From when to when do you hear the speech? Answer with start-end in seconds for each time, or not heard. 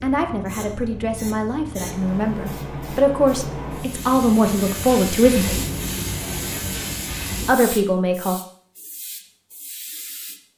0.0-5.5, 7.5-8.4.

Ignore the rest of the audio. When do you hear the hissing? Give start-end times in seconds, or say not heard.
0.0-10.4.